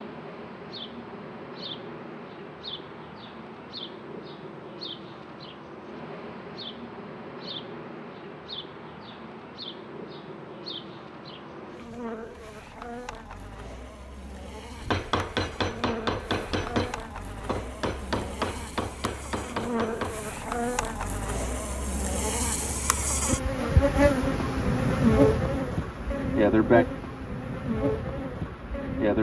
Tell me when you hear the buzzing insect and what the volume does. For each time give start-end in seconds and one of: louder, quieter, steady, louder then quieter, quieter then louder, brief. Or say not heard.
0.0-29.1 louder.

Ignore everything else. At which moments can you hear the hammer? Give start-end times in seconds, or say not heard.
14.8-20.1.